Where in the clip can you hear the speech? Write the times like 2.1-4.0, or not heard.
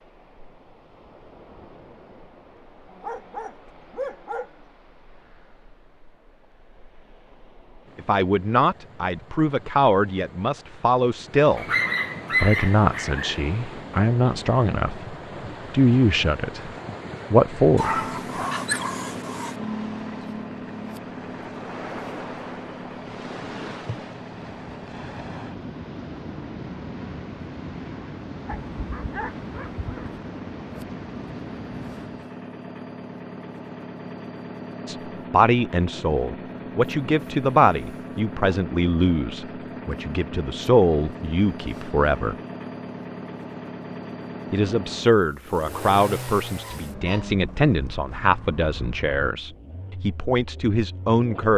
8.0-11.7, 12.4-16.7, 17.3-18.0, 34.9-42.4, 44.5-51.5.